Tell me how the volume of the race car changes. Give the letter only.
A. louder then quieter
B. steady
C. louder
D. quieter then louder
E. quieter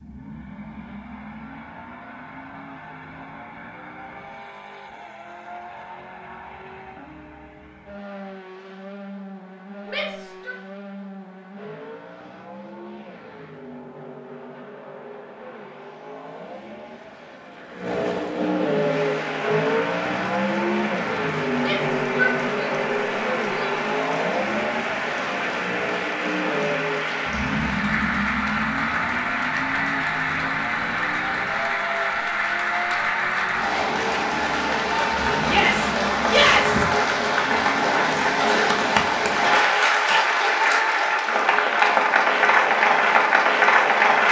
A.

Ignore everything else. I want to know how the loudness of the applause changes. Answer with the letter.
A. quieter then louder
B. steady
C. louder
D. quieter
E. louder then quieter
C.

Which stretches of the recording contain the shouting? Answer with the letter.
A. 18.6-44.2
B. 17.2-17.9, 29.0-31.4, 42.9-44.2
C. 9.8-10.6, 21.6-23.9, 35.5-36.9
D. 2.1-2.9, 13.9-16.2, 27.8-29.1
C.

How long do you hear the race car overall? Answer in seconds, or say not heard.
40 s.